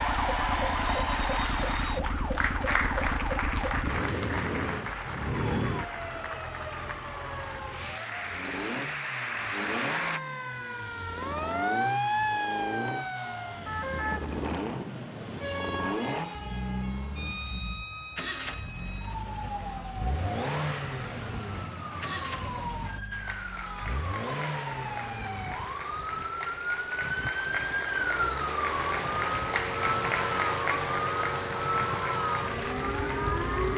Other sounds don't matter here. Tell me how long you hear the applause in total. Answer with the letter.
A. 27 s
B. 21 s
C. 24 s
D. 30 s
B.